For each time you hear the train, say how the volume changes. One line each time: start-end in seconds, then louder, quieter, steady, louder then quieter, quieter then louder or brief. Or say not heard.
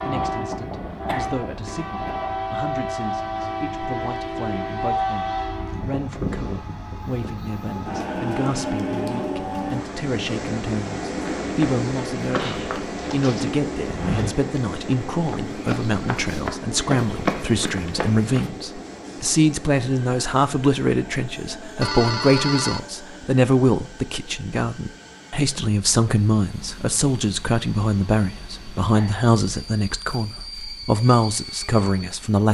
0.0-32.4 quieter.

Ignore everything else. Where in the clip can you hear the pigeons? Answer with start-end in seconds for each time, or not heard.
not heard.